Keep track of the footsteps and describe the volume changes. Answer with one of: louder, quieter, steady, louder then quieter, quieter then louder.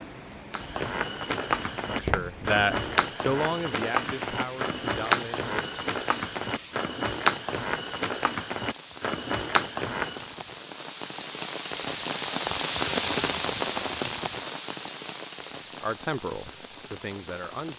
steady.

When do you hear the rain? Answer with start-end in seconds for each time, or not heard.
0.0-17.7.